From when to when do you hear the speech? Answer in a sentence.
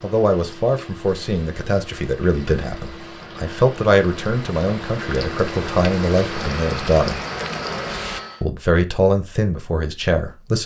You can hear the speech from 0.0 to 7.2 s and from 8.4 to 10.6 s.